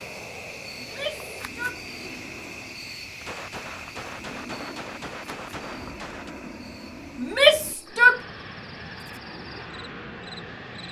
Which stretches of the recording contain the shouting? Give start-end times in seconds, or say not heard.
0.8-2.3, 7.2-8.2.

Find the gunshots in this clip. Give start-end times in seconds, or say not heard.
3.2-6.3.